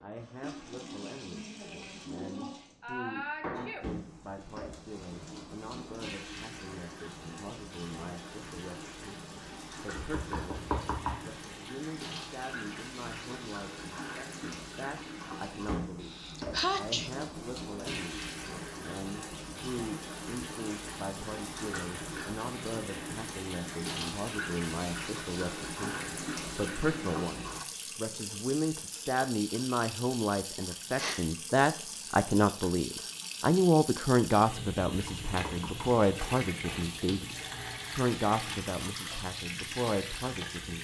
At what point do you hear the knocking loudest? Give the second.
11 s.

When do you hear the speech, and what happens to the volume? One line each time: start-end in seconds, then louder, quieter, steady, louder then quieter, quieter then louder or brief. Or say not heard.
0.0-40.7 louder.